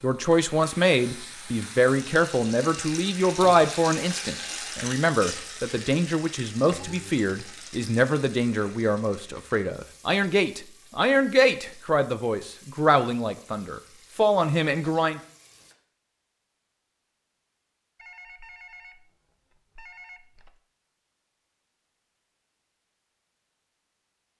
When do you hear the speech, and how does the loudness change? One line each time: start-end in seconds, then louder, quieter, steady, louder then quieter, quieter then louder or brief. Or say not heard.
0.0-15.2 steady.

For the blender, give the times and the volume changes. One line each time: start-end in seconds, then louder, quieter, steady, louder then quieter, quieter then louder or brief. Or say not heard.
not heard.